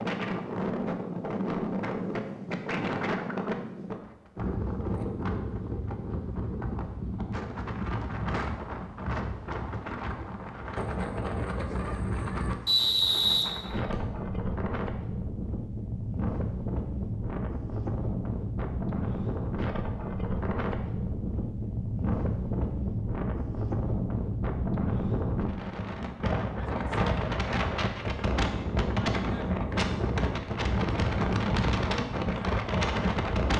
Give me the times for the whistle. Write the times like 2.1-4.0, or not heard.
12.7-14.0.